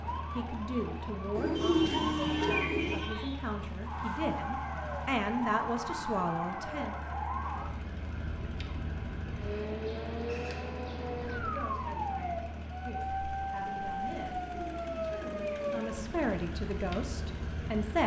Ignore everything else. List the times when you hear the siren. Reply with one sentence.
You can hear the siren from 0.0 to 18.0 s.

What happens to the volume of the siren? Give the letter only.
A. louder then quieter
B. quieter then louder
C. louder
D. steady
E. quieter
D.